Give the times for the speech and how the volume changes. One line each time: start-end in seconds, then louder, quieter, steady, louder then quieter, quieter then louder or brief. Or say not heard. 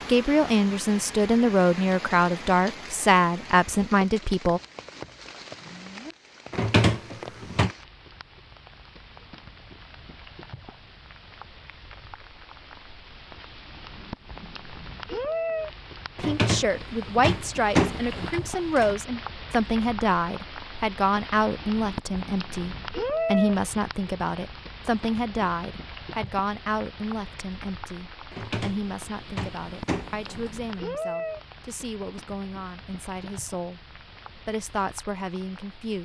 0.1-4.6 steady
16.1-36.0 quieter.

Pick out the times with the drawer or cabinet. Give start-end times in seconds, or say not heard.
6.5-7.7, 16.1-18.9, 28.3-30.6.